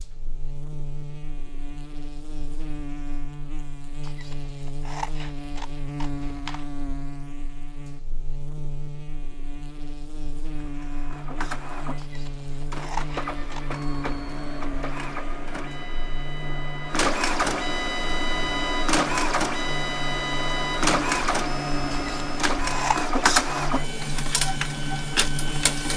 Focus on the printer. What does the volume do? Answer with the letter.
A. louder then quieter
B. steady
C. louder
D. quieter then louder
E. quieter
C.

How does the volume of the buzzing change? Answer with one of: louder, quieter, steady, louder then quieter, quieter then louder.
steady.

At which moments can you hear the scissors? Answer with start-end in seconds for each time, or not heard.
4.0-6.7, 11.9-13.8, 21.9-23.0.